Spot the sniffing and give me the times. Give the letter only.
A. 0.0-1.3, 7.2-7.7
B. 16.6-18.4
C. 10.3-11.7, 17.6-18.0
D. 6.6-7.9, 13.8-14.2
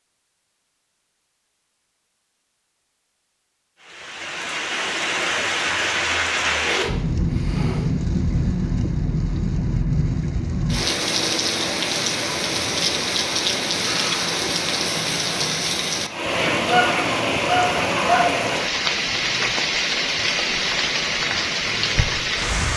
D.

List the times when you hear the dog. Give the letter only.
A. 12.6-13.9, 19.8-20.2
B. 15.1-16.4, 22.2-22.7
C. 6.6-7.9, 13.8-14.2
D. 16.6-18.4
D.